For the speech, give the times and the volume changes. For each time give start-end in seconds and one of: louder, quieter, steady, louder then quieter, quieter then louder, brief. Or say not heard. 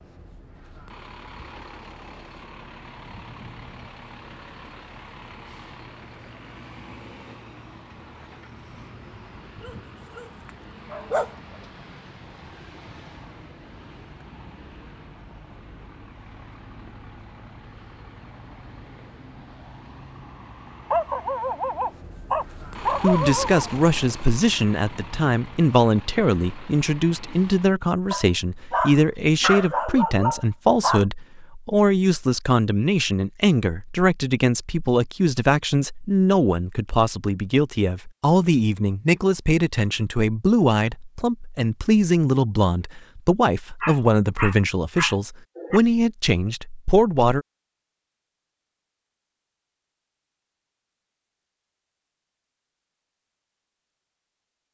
22.9-47.5 steady.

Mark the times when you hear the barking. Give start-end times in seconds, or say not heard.
9.6-11.3, 20.9-23.6, 28.1-31.1, 43.8-45.8.